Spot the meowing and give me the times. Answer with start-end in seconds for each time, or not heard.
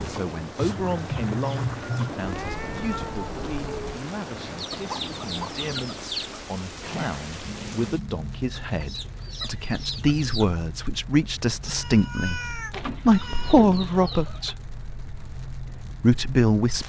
2.2-4.0, 7.5-8.2, 11.7-13.6.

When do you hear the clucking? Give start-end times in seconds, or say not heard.
0.6-2.1, 4.5-6.4, 8.5-10.6, 12.7-14.6.